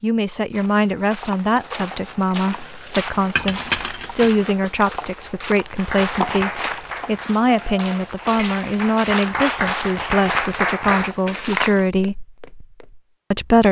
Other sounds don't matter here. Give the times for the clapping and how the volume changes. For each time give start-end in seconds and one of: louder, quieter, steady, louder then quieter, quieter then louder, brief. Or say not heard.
5.8-11.8 quieter then louder.